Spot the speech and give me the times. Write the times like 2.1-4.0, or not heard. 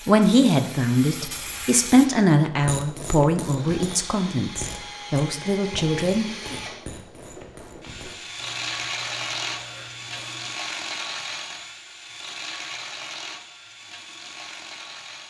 0.1-6.5.